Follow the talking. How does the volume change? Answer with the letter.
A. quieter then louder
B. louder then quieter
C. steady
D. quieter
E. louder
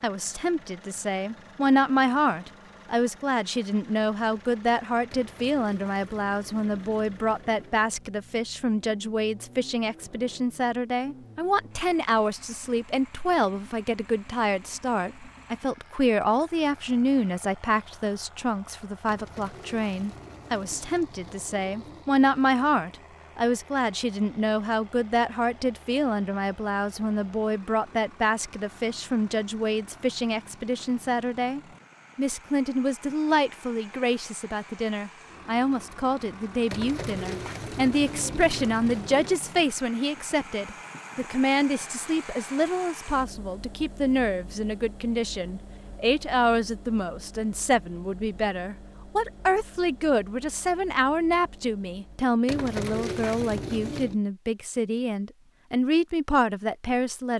C.